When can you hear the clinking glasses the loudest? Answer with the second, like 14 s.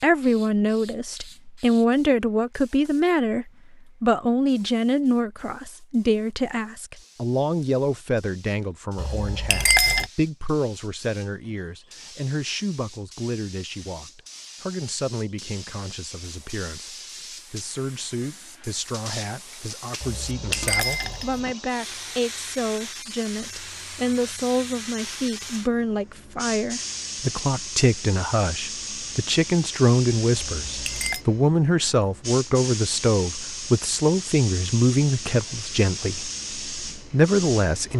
10 s.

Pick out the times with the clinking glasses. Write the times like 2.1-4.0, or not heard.
8.9-10.1, 20.0-21.6, 30.3-31.2.